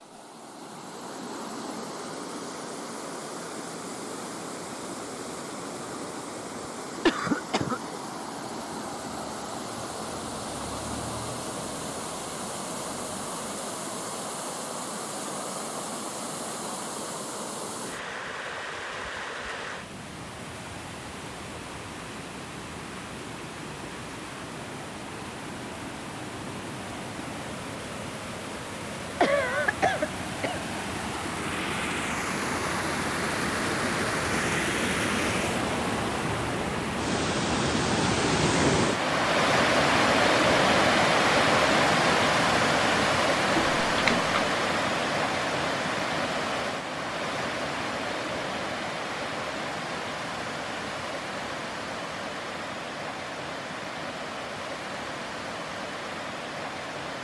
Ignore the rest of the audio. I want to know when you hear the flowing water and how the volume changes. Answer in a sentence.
The flowing water can be heard from 0.0 to 57.1 s, getting louder then quieter.